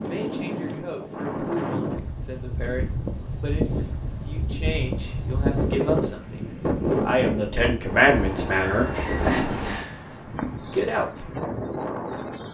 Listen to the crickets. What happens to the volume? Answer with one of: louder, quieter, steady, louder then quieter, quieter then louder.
louder.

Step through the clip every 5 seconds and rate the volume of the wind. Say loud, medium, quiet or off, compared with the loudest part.
loud, loud, medium.